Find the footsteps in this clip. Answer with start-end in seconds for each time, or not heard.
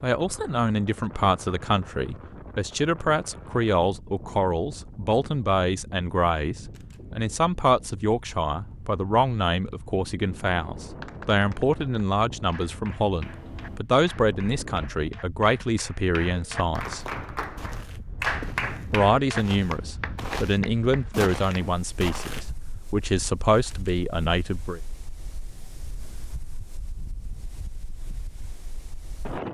16.9-22.5.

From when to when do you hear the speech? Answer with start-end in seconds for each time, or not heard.
0.0-17.1, 18.9-24.8.